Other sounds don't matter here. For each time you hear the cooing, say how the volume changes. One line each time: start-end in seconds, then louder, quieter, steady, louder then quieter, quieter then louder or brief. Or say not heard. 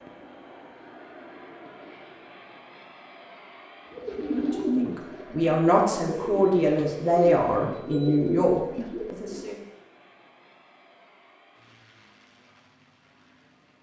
3.9-9.6 quieter then louder.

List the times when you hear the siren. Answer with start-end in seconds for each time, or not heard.
not heard.